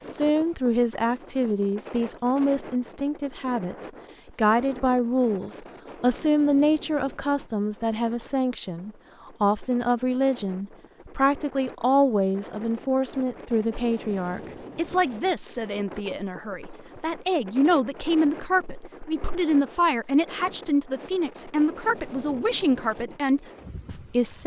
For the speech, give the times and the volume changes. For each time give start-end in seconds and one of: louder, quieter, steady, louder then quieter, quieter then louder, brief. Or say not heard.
0.0-24.4 steady.